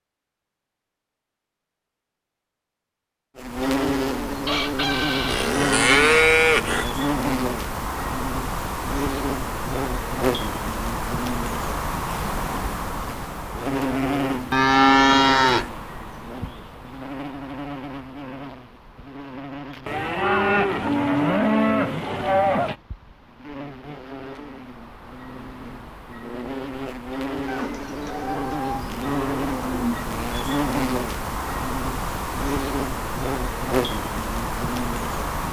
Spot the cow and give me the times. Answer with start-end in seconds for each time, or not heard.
5.2-6.8, 14.5-15.7, 19.9-22.8, 27.4-30.1.